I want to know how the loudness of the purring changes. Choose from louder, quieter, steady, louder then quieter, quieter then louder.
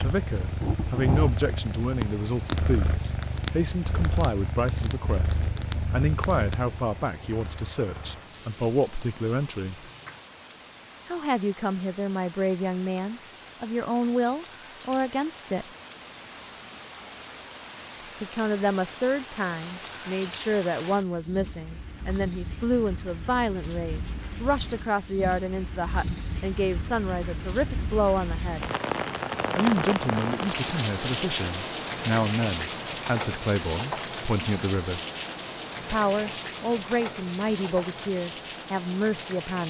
quieter.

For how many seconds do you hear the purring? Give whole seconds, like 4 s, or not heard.
8 s.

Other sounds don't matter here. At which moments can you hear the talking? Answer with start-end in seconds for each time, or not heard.
0.0-9.9, 11.1-15.7, 18.2-28.6, 29.6-35.0, 35.8-39.6.